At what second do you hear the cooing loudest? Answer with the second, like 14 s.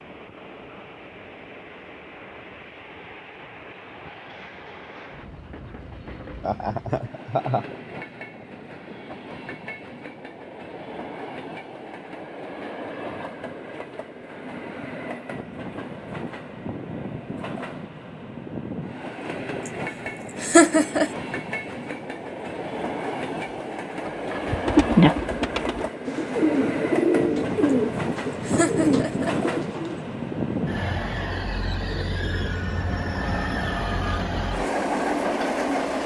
25 s.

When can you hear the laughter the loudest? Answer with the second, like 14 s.
21 s.